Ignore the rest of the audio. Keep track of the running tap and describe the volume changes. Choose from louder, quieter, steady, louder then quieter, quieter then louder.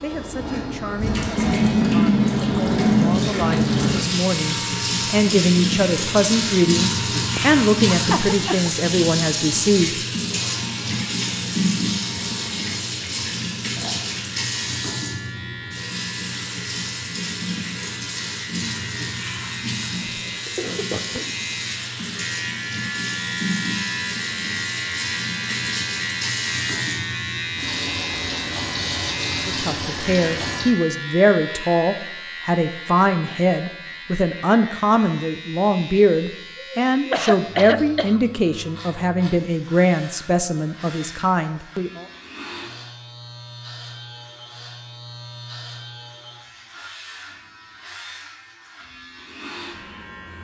quieter.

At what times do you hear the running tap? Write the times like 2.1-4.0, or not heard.
0.0-30.6.